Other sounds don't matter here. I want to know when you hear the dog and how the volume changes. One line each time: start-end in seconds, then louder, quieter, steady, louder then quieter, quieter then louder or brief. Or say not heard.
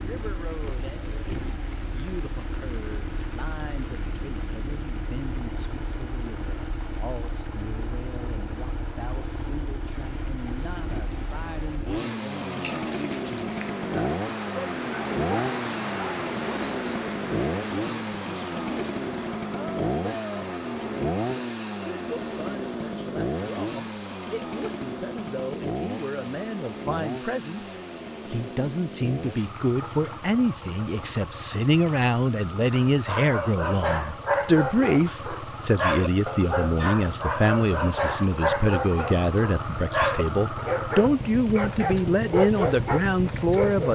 32.7-43.9 steady.